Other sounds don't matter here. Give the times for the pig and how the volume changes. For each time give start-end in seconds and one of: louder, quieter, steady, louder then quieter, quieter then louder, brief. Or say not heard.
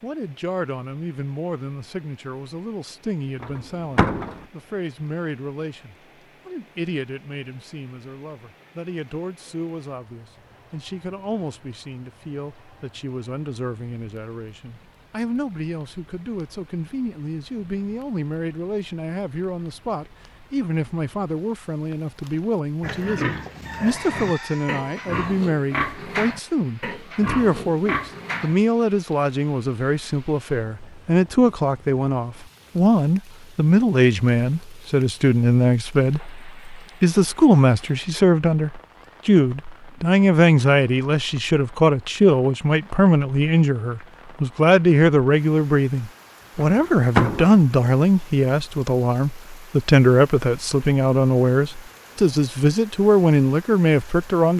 22.8-28.6 steady.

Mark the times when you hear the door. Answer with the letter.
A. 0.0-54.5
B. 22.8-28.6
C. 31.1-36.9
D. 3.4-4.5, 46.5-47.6
D.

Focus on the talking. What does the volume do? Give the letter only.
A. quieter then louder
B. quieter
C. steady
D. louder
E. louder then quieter
D.